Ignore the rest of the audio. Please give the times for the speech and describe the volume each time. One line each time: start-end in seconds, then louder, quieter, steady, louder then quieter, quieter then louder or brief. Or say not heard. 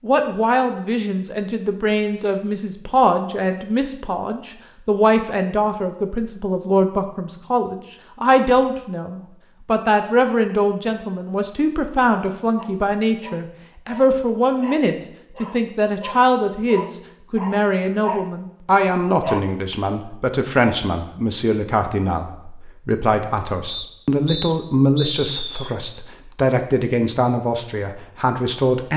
0.0-28.9 steady.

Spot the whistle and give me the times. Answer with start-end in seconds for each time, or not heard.
23.6-25.7.